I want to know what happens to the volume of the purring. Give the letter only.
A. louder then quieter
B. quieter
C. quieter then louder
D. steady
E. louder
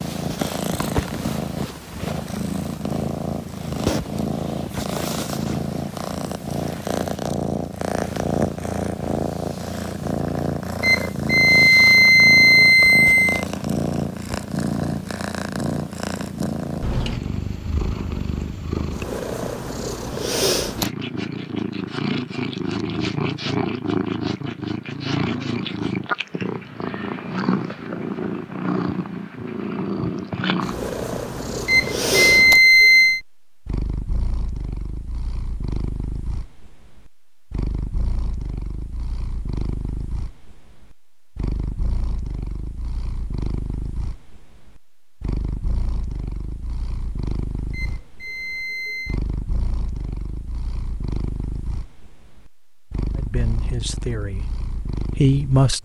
B.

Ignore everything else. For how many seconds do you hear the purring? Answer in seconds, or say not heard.
56 s.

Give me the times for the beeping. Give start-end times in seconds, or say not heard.
10.8-13.4, 31.6-33.2, 47.7-49.2.